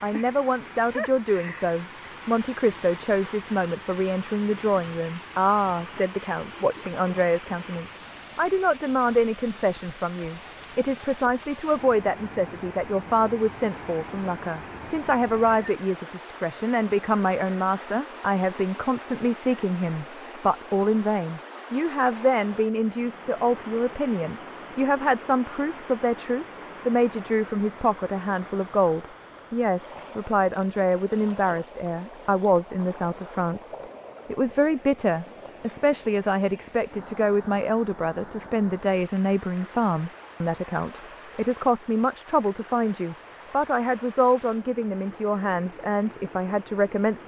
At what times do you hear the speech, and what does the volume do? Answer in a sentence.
You can hear the speech from 0.0 to 47.2 s, at a steady volume.